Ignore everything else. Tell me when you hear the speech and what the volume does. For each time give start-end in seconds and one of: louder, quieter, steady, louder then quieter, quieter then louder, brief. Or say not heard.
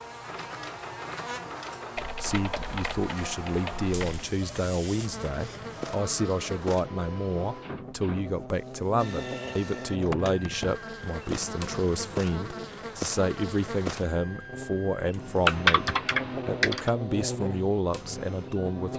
2.2-15.8 steady
16.4-18.9 brief.